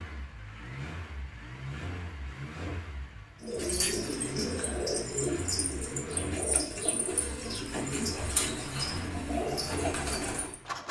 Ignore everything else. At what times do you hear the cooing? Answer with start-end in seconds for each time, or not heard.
3.4-10.6.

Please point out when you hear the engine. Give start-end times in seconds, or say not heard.
0.0-10.8.